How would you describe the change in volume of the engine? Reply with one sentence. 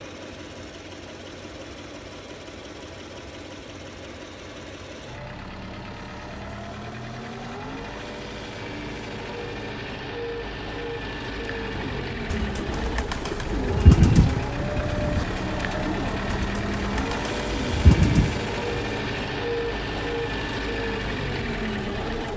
The loudness of the engine goes up.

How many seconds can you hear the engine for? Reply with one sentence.
The engine can be heard for 22 seconds in total.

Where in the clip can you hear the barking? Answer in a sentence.
The barking can't be heard in this clip.